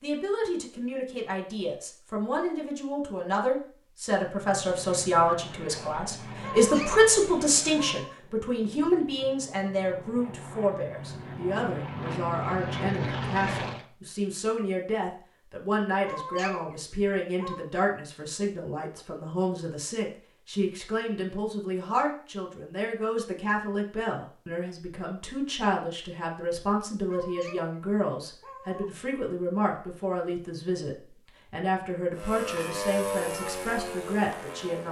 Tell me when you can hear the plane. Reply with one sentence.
The plane can be heard from 4.3 to 13.8 s and from 32.1 to 34.8 s.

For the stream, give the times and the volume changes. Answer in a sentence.
You can't hear the stream here.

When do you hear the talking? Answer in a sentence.
The talking can be heard from 0.0 to 34.8 s.